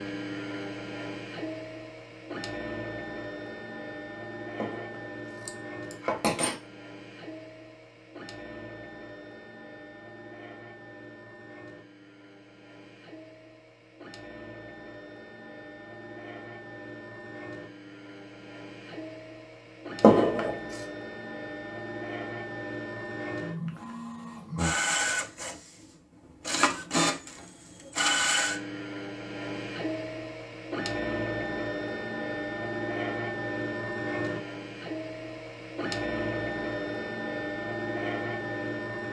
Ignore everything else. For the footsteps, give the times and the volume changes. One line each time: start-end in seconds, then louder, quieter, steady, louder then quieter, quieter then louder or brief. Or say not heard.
not heard.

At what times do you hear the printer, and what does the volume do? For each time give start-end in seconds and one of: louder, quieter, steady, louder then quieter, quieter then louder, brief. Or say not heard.
0.0-39.0 quieter then louder.